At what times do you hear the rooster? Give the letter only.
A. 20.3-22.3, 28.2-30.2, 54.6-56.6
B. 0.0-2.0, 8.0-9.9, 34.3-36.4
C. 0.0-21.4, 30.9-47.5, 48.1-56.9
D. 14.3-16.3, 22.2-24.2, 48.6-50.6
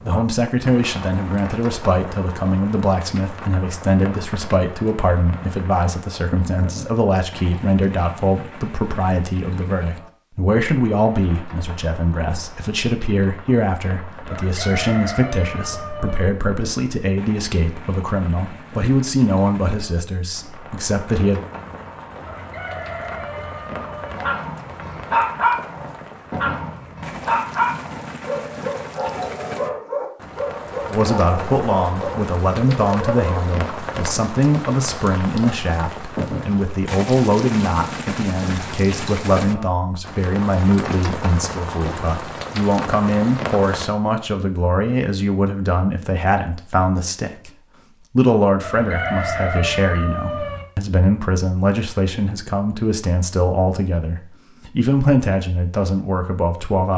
D.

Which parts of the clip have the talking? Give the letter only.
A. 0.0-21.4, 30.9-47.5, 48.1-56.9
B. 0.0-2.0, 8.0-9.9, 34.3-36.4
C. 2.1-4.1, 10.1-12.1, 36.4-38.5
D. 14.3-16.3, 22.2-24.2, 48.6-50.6
A.